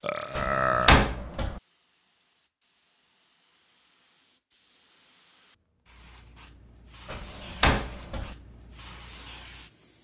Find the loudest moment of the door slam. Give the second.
1 s.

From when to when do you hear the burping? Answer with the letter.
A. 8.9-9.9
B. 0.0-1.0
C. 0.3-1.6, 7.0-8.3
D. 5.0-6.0
B.